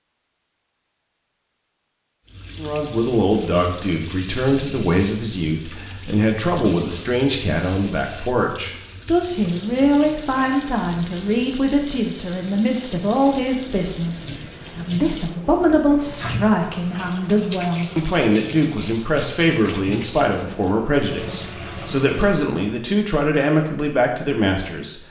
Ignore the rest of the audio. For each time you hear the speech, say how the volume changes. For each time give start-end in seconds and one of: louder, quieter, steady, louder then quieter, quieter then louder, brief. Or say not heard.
2.5-25.0 steady.